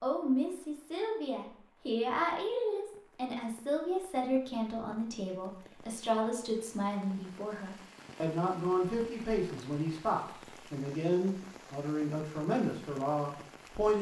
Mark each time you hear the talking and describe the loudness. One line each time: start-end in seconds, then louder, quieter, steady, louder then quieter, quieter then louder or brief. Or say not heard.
0.0-13.9 steady.